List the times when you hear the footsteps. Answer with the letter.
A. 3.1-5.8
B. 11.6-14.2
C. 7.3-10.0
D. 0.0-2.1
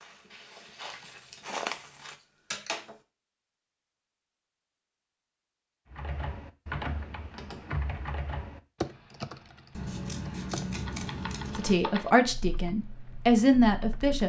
D.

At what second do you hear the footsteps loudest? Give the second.
2 s.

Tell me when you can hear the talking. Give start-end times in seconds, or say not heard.
11.6-14.2.